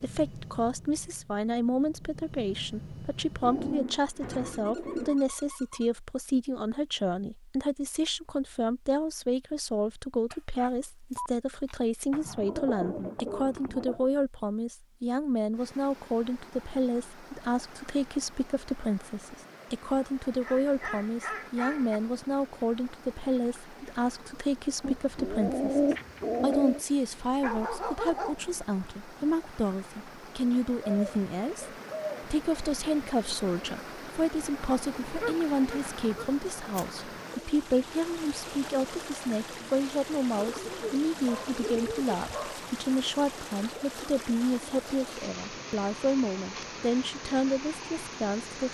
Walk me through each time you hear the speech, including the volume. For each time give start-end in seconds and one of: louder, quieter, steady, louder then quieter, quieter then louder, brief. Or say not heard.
0.0-48.6 steady.